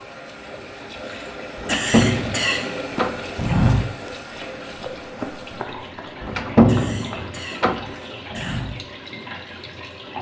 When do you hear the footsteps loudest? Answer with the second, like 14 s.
4 s.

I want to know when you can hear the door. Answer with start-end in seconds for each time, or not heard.
1.6-3.3, 6.2-8.0.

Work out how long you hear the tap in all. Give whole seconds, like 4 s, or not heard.
10 s.